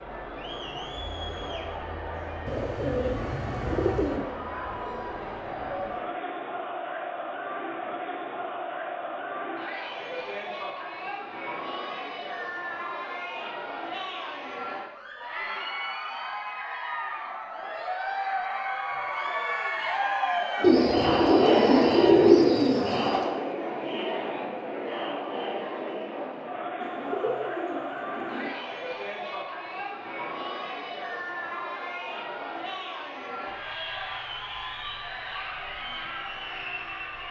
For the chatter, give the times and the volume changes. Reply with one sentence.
The chatter can be heard from 0.0 to 37.2 s, getting louder then quieter.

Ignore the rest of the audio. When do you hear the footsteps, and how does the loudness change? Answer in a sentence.
The footsteps can't be heard in this clip.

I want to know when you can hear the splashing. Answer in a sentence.
You can't hear the splashing here.